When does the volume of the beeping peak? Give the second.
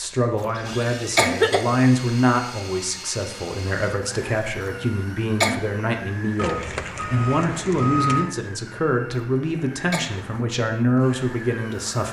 8 s.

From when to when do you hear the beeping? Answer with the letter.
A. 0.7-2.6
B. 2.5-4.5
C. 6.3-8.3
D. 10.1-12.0
C.